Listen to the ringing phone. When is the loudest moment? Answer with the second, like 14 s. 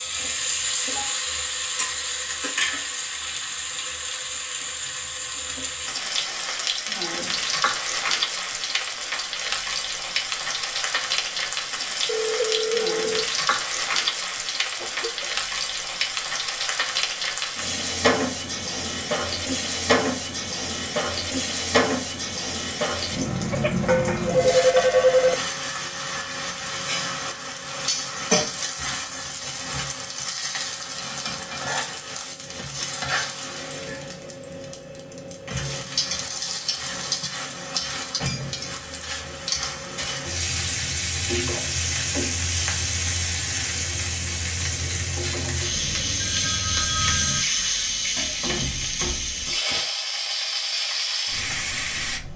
25 s.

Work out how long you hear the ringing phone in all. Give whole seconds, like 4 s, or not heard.
5 s.